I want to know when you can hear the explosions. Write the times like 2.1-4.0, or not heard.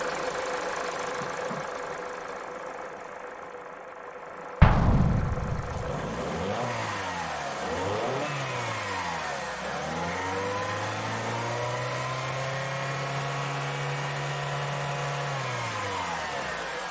4.6-5.9.